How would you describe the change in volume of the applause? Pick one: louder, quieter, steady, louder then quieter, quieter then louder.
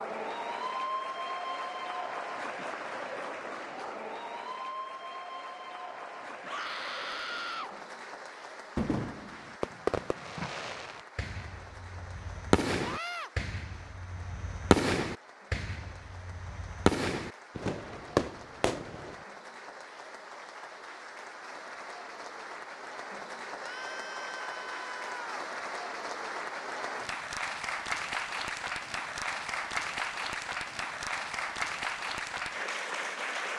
quieter then louder.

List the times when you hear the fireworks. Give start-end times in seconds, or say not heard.
8.8-19.2.